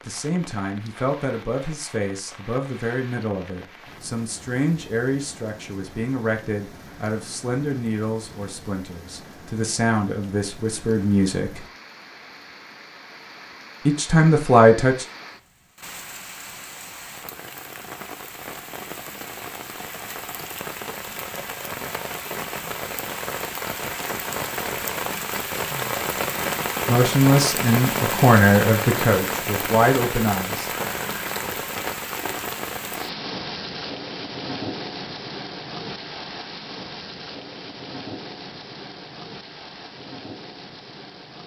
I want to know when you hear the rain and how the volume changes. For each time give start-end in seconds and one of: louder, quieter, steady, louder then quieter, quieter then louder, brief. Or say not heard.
0.0-41.4 louder then quieter.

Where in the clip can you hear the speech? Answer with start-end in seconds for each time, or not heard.
0.1-11.6, 13.8-15.1, 26.9-30.6.